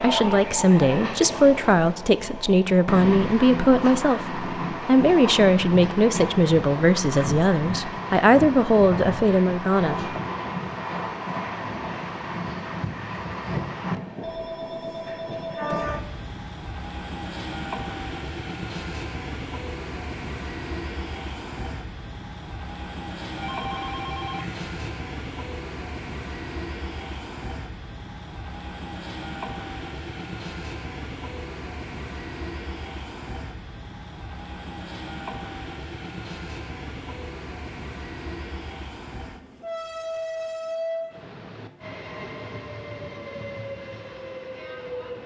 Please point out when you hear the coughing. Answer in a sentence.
The coughing can't be heard in this clip.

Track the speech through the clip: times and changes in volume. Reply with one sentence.
The speech can be heard from 0.0 to 10.2 s, at a steady volume.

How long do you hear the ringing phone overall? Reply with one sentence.
The ringing phone can be heard for 3 seconds in total.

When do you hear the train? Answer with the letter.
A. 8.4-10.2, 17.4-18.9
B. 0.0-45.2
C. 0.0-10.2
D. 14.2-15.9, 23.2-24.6
B.